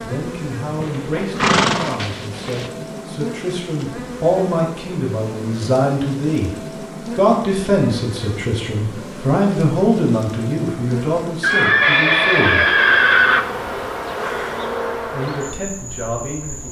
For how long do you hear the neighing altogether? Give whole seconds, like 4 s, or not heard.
4 s.